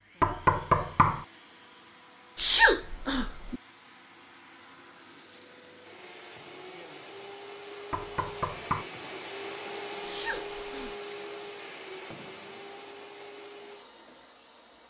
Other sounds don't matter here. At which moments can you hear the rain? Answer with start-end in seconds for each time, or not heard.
not heard.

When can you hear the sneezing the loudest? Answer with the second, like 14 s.
3 s.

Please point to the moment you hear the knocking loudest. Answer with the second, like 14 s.
1 s.